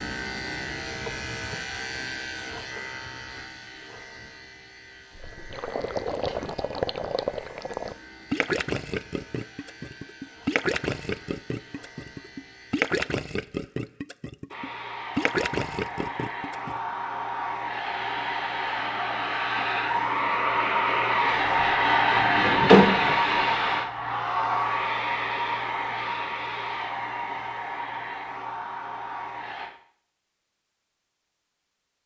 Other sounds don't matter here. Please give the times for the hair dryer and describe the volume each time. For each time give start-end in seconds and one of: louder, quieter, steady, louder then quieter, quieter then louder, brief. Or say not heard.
14.5-29.7 louder then quieter.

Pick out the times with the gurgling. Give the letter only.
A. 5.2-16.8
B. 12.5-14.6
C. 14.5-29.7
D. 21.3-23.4
A.